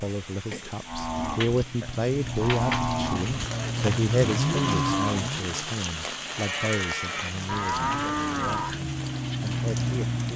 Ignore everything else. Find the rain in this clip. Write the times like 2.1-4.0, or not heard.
0.0-10.3.